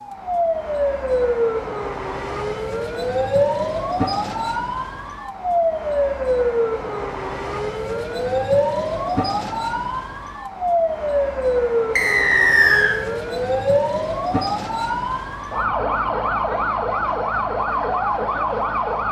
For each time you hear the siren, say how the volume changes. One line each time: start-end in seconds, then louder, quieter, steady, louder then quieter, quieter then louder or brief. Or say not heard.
0.0-19.0 steady.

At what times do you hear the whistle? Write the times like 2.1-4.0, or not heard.
11.9-12.9.